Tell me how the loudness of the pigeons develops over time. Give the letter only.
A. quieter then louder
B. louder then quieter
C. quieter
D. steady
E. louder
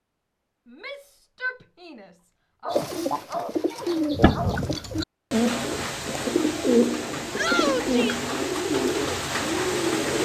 D.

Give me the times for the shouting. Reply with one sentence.
The shouting can be heard from 0.7 to 2.8 s and from 7.3 to 8.2 s.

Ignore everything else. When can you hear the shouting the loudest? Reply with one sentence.
The volume of the shouting peaks at 8 seconds.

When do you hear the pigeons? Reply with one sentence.
You can hear the pigeons from 2.7 to 10.2 s.